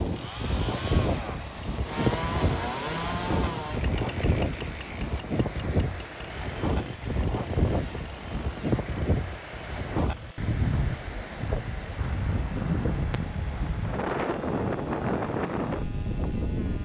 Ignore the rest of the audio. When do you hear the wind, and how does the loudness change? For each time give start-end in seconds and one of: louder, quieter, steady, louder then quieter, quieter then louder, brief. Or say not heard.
0.0-16.8 steady.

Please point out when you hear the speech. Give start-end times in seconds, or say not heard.
not heard.